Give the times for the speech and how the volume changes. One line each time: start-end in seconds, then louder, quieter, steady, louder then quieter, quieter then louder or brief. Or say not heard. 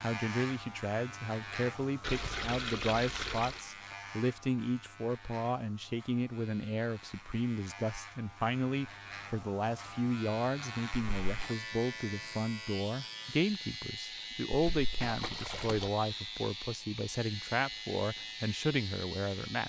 0.0-19.6 steady.